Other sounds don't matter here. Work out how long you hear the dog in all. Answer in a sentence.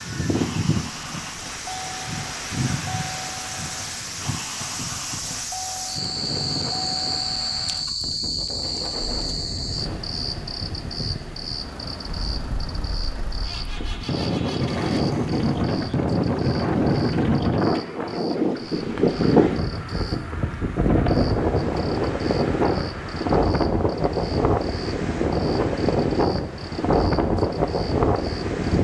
The dog can't be heard in this clip.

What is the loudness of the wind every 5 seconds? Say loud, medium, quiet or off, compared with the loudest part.
medium, quiet, medium, loud, loud, loud.